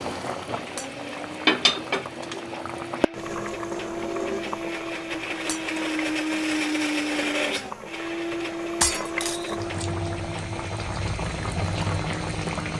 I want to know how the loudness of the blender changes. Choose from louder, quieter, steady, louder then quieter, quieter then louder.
louder then quieter.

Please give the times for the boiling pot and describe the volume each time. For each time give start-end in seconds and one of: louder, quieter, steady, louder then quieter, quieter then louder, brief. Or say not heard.
0.0-12.7 quieter then louder.